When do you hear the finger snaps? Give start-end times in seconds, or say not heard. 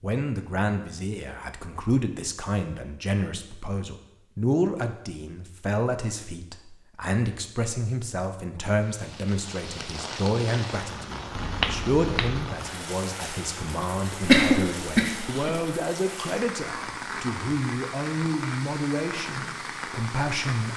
11.3-12.5.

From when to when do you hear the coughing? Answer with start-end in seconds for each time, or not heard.
14.2-15.5.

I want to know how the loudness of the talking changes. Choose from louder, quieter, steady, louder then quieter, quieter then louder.
steady.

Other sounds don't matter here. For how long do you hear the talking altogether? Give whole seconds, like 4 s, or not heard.
21 s.